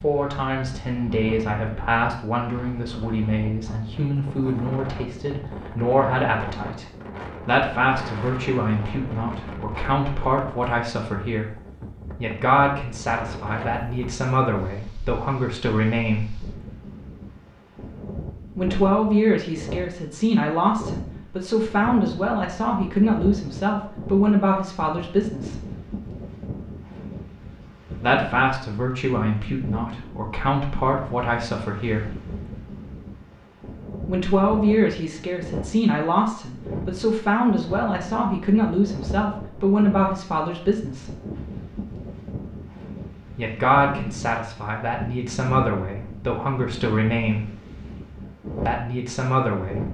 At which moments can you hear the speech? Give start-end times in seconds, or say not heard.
0.0-16.4, 18.6-25.6, 27.9-32.2, 34.0-41.1, 43.4-47.5, 48.6-49.8.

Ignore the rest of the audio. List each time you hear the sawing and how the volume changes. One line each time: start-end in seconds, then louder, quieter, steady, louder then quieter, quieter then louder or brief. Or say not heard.
not heard.